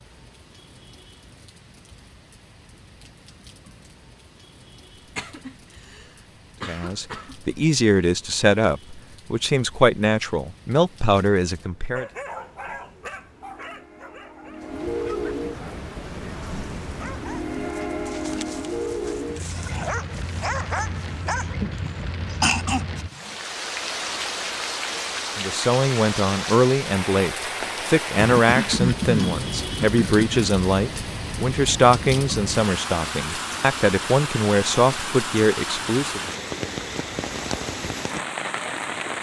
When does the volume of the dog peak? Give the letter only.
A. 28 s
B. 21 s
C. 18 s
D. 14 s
B.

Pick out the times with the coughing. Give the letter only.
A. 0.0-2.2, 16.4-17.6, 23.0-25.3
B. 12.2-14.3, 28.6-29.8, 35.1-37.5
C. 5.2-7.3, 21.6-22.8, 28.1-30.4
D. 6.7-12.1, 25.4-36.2
C.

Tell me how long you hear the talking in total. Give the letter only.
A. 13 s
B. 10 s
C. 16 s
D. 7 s
C.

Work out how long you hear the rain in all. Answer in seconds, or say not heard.
39 s.